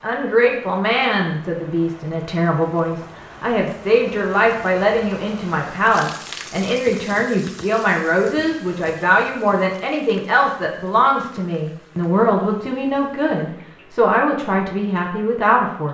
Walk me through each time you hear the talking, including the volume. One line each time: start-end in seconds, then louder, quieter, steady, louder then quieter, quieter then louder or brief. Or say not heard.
0.0-15.9 steady.